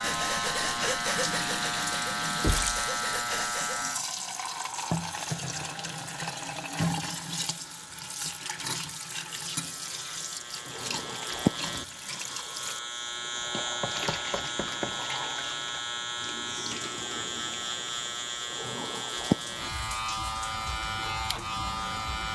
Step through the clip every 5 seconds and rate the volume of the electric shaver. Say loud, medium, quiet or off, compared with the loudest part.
loud, quiet, loud, loud, loud.